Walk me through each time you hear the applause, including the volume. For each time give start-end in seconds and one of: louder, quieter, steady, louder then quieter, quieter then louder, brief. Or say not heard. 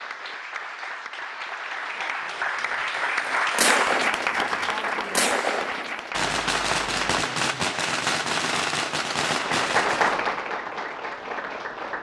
0.0-7.3 louder then quieter
9.3-11.9 brief.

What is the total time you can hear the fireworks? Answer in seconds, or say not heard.
6 s.